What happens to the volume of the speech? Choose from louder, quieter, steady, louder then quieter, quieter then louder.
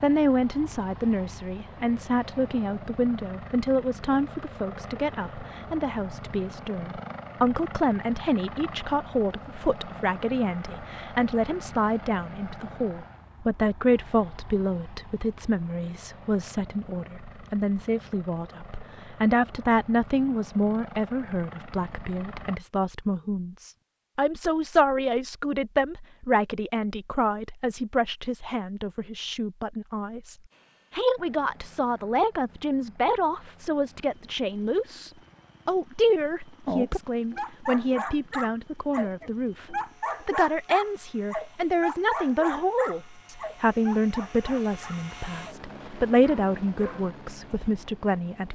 steady.